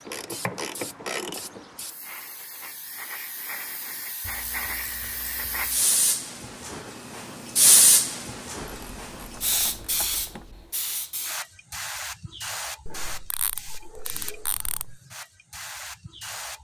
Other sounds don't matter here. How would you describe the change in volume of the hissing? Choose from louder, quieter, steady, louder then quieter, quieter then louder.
louder then quieter.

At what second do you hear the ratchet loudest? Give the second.
1 s.